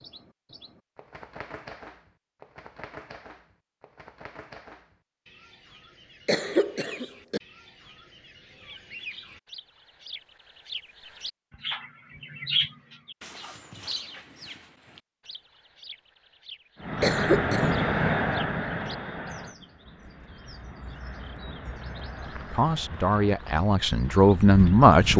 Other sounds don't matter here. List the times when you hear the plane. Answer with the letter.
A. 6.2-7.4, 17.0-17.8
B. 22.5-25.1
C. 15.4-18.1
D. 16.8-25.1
D.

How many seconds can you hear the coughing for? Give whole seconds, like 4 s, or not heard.
2 s.